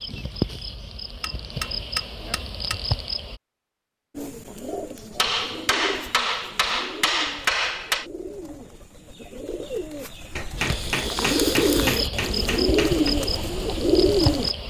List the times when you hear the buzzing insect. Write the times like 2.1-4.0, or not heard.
0.0-3.4, 10.6-14.6.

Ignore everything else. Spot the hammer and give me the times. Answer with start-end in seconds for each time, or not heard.
0.1-2.8, 5.2-8.1, 10.3-13.2.